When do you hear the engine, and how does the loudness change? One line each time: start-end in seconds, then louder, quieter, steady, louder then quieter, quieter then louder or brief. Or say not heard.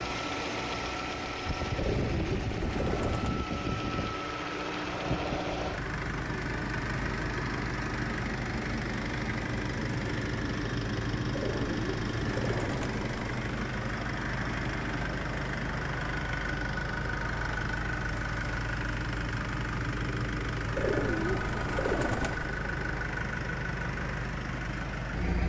0.0-25.4 steady.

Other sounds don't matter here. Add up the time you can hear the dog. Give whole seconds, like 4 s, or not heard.
not heard.